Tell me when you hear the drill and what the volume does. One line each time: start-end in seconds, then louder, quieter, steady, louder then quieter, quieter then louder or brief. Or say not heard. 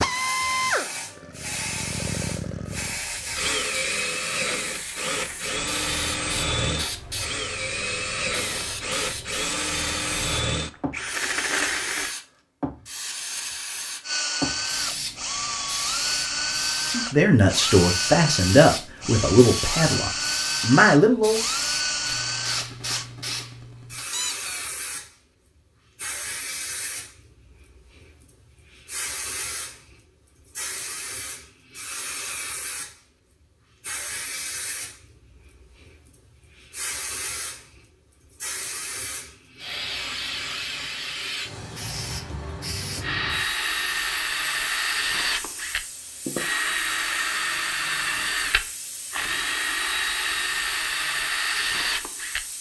0.0-12.2 steady
14.0-23.1 steady
43.0-52.5 steady.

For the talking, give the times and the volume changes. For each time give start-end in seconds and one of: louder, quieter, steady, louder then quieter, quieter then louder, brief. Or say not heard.
16.9-21.4 quieter then louder.